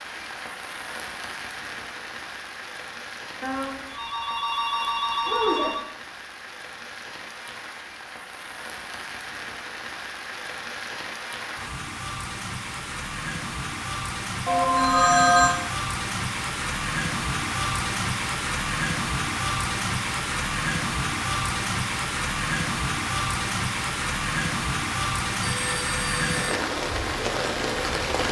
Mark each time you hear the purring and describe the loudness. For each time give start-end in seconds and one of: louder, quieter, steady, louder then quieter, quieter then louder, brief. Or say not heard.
not heard.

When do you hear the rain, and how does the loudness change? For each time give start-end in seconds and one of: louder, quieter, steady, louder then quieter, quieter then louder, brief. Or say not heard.
0.0-28.2 louder.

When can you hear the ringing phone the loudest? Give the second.
15 s.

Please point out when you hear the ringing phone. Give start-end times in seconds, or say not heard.
3.4-5.8, 14.4-15.6, 25.4-26.6.